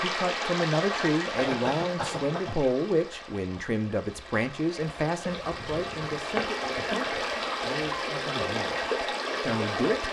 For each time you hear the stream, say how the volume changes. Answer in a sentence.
The stream can be heard from 0.0 to 10.0 s, getting quieter then louder.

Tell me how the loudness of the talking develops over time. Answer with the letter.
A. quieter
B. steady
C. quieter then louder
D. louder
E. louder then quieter
A.